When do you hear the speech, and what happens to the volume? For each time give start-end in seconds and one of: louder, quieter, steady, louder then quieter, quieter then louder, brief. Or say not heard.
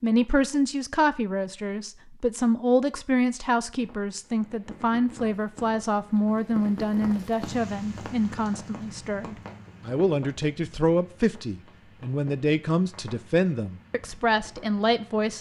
0.0-15.3 steady.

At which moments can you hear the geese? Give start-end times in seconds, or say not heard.
not heard.